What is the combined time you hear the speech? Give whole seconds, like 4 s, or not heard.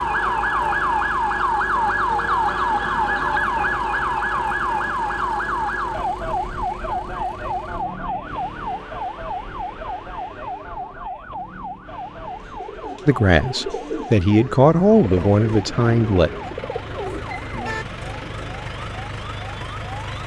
3 s.